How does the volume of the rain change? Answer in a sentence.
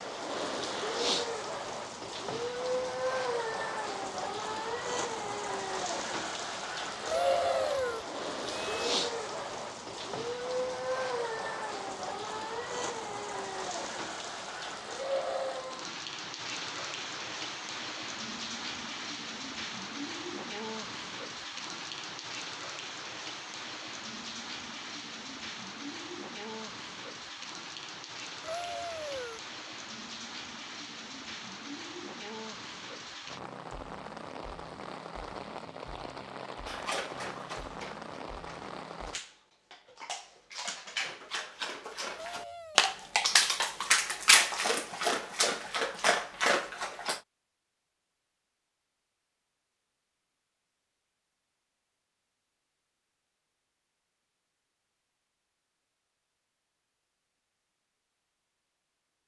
The loudness of the rain goes down.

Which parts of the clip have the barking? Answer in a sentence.
The barking can be heard from 36.6 to 47.2 s.